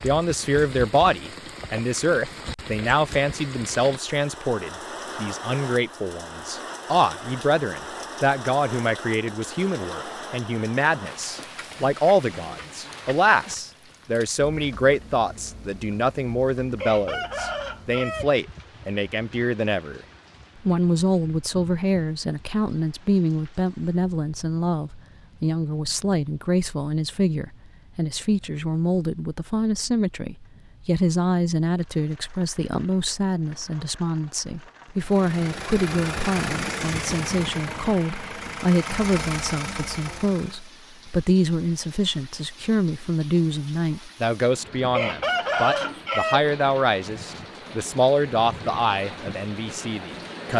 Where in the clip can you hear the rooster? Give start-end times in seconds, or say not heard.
16.8-18.3, 44.9-46.5.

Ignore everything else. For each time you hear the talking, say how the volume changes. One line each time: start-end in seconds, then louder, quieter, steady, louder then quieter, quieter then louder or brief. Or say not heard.
0.0-50.5 steady.